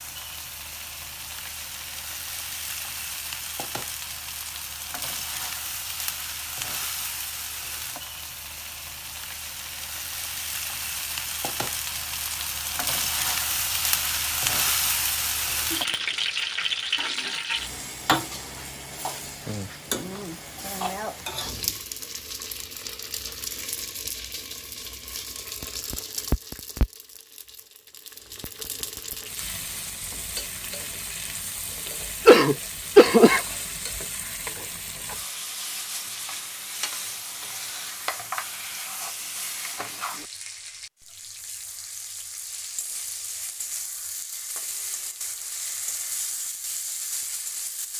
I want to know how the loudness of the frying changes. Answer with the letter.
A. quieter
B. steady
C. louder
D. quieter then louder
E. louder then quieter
E.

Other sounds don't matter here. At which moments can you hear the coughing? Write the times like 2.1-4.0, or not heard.
32.2-33.4.